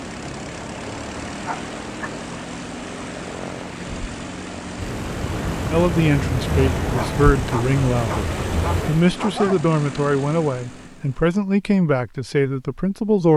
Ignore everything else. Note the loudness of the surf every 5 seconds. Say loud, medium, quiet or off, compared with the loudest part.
medium, loud, off.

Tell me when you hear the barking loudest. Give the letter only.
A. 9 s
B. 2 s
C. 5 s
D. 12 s
A.